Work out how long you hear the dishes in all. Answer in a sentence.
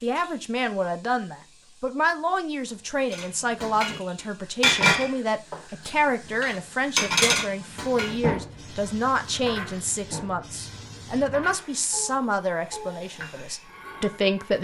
You can hear the dishes for 11 seconds altogether.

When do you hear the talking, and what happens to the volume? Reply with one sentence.
The talking can be heard from 0.0 to 14.5 s, at a steady volume.